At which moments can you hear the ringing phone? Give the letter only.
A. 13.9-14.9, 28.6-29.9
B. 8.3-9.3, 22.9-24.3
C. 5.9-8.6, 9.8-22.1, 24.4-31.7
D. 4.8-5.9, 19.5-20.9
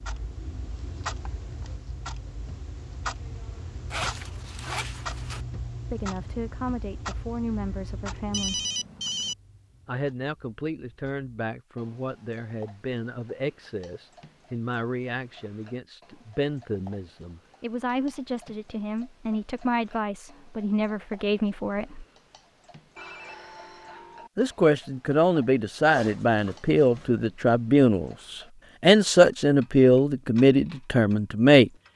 B.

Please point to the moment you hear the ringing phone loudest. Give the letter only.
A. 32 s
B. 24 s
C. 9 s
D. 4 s
C.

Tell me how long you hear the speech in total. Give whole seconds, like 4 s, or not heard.
22 s.